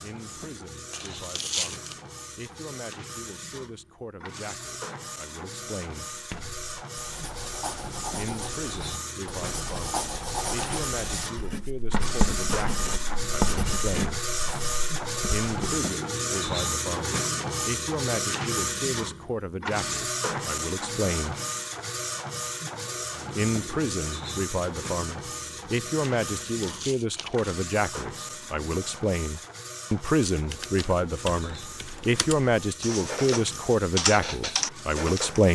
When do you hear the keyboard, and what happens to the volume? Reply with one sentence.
The keyboard can be heard from 30.5 to 35.5 s, getting louder.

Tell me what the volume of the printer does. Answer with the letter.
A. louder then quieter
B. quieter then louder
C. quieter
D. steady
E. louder
A.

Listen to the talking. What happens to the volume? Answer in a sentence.
The loudness of the talking goes up.